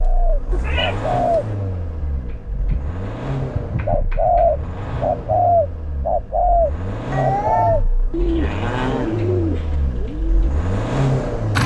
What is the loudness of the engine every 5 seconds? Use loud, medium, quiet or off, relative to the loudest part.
medium, medium, loud.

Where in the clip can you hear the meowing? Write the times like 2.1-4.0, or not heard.
0.5-1.5, 7.1-7.8.